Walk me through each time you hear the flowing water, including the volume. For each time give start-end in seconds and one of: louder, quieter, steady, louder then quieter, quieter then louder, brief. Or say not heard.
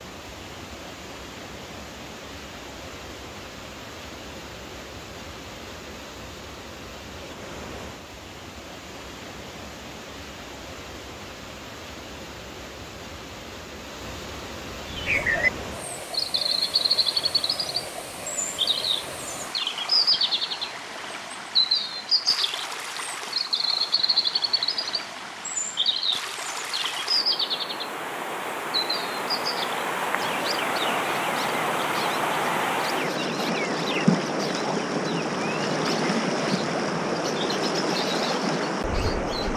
0.0-39.5 louder.